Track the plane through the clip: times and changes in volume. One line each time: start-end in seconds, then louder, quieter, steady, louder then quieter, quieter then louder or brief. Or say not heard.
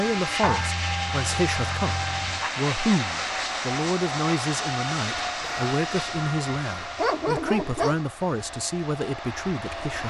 0.0-10.0 quieter.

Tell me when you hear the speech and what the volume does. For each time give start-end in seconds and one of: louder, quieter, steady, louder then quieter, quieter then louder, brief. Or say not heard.
0.0-10.0 steady.